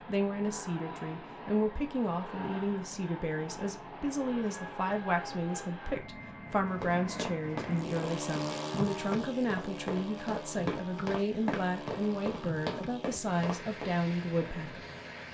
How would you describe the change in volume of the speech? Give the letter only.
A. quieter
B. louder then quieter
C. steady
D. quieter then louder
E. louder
C.